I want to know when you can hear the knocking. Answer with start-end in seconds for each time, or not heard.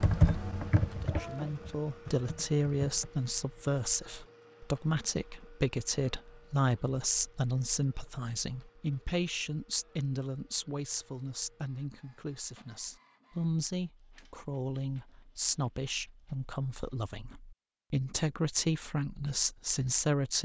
not heard.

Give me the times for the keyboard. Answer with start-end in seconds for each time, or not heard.
0.0-3.1.